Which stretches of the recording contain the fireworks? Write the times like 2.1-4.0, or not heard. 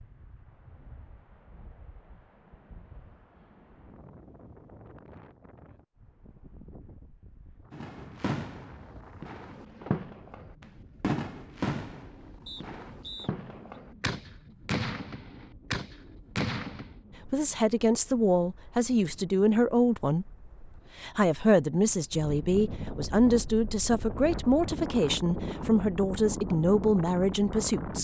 7.7-16.9.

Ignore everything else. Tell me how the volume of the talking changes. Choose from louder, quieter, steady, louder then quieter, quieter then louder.
steady.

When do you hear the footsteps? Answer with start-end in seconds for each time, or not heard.
not heard.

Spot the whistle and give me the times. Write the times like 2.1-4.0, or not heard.
12.4-13.8.